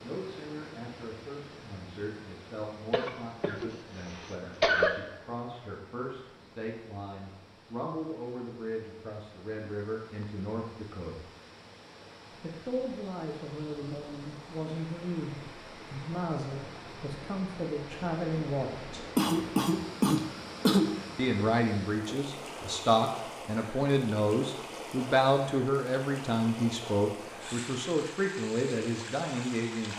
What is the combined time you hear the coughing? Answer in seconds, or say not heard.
4 s.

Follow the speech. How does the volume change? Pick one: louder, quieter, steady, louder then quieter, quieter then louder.
louder.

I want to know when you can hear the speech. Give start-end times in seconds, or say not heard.
0.0-11.2, 12.4-19.1, 21.1-29.9.